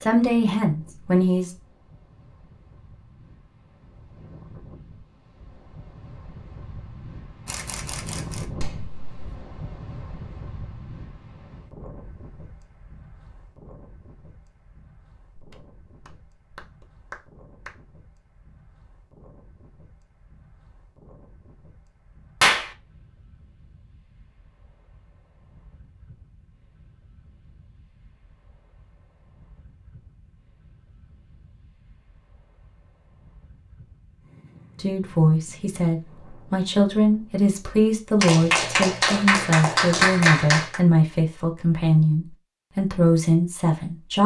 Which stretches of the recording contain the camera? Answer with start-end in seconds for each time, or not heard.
7.5-8.4.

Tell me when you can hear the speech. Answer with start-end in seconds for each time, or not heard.
0.0-1.5, 34.8-44.2.